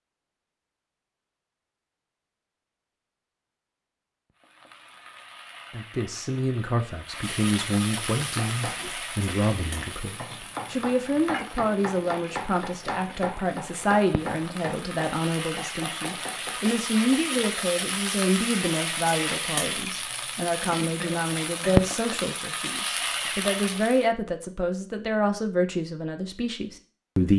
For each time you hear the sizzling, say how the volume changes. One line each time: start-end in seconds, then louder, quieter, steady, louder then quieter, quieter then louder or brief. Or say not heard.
4.3-24.1 louder.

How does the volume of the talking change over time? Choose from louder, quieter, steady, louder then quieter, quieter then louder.
steady.